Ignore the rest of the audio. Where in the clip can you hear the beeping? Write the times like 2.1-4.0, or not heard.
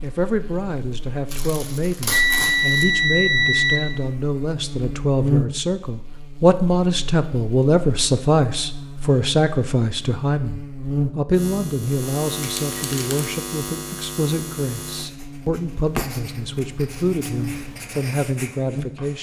2.1-3.8.